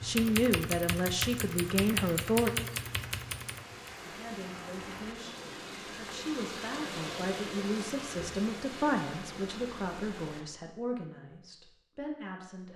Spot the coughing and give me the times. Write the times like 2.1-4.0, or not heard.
not heard.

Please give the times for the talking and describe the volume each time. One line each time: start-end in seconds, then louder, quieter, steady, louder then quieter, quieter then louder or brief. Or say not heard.
0.0-2.5 brief
4.0-12.7 louder then quieter.